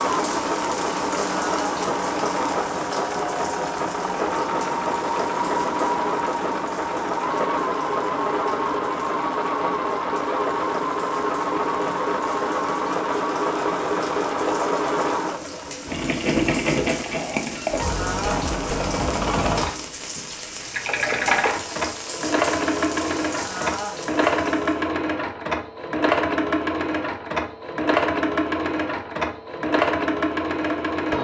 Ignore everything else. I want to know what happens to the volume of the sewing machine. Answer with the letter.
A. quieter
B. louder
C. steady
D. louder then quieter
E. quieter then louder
C.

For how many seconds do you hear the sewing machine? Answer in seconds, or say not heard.
31 s.